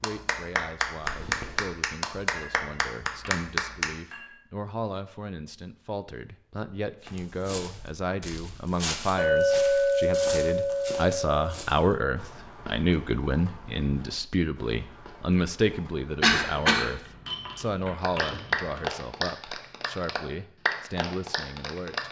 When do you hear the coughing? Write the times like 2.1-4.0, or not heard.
1.0-1.6, 16.2-16.9.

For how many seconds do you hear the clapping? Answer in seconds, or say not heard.
8 s.